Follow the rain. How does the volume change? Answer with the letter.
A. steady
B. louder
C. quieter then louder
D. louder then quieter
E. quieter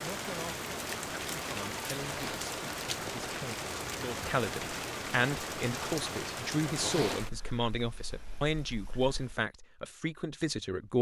E.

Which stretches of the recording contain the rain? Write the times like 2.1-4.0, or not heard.
0.0-9.4.